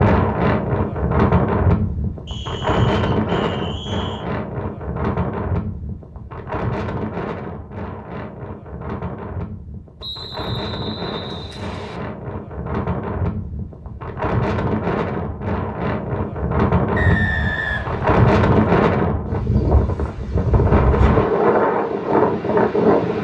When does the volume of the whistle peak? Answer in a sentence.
The volume of the whistle peaks at 17 seconds.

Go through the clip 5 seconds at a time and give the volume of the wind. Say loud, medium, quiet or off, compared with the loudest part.
loud, medium, medium, loud, loud.